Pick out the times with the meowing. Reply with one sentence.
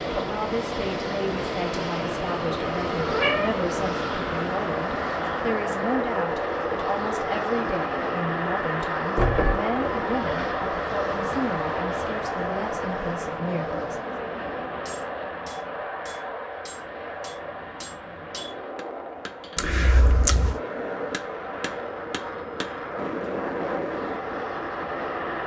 You can hear the meowing from 3.0 to 3.5 s, from 9.2 to 10.5 s and from 19.6 to 20.6 s.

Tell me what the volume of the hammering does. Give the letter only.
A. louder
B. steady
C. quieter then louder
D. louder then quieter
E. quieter
A.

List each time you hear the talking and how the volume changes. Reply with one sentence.
You can hear the talking from 0.1 to 14.1 s, at a steady volume.